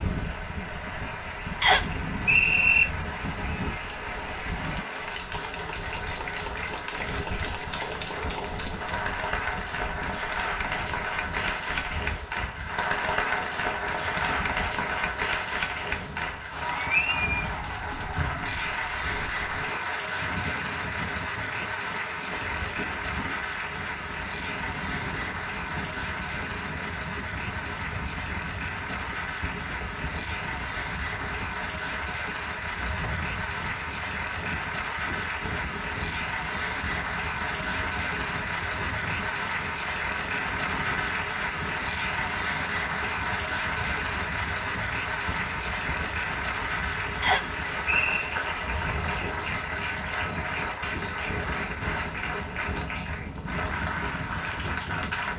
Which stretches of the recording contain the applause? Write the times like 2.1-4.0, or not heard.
0.0-55.3.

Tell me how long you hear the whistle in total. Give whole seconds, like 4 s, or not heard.
2 s.